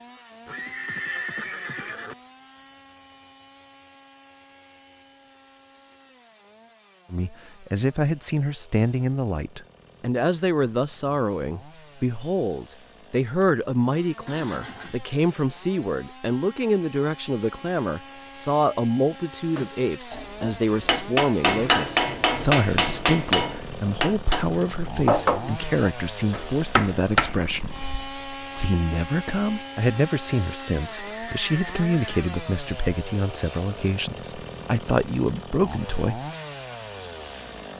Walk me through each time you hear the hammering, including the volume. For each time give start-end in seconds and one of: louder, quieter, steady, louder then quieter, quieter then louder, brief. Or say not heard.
19.6-28.1 steady.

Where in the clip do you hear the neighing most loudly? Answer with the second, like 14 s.
1 s.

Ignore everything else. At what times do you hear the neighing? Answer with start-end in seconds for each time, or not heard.
0.5-2.1, 14.2-15.0, 30.9-32.1.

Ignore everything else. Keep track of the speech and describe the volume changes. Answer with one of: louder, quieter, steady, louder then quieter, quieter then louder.
steady.